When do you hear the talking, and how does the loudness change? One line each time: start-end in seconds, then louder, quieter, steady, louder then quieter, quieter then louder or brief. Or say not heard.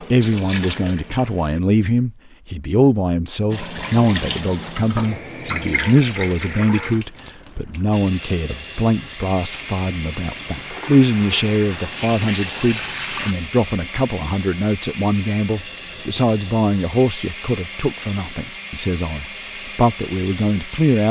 0.0-21.0 steady.